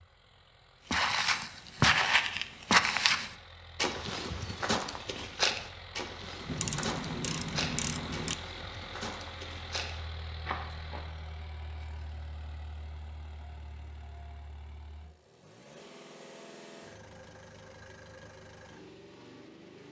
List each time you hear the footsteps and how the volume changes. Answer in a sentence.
The footsteps can be heard from 0.9 to 11.1 s, getting quieter.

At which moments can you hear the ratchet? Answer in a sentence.
The ratchet can be heard from 6.5 to 8.3 s.